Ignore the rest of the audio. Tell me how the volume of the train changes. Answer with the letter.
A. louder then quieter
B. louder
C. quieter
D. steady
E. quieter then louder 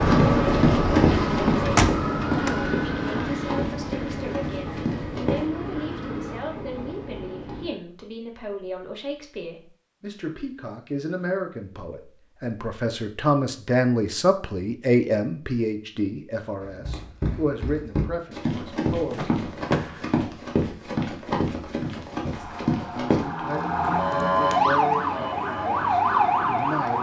C.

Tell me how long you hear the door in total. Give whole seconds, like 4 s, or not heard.
2 s.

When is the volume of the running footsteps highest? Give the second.
1 s.